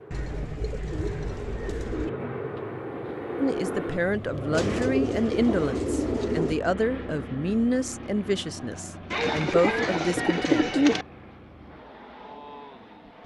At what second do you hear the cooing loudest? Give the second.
11 s.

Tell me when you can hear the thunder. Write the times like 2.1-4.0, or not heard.
not heard.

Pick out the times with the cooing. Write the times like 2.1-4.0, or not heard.
0.1-2.1, 4.5-6.5, 9.1-11.1.